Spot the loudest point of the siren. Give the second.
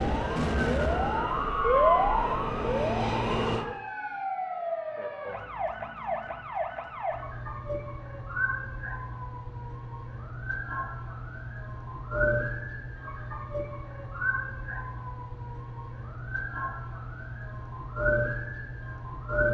2 s.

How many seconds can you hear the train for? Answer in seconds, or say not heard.
4 s.